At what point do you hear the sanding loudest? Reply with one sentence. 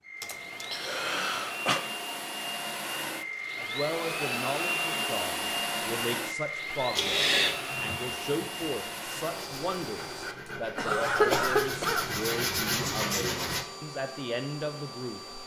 The loudest moment of the sanding is at 13 seconds.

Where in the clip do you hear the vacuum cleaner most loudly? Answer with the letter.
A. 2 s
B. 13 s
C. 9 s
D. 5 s
D.